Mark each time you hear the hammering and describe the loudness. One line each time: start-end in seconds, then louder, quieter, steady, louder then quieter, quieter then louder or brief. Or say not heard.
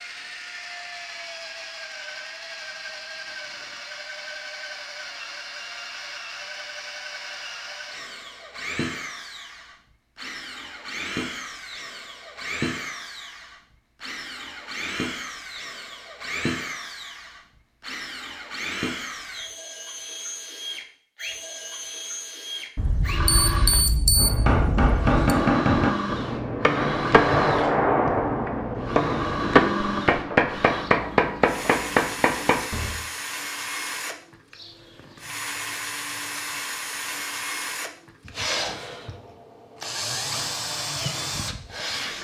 24.1-33.0 steady.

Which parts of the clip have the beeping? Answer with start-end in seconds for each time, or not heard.
22.8-25.2.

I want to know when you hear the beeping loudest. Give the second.
24 s.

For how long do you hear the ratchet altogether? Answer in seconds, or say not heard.
not heard.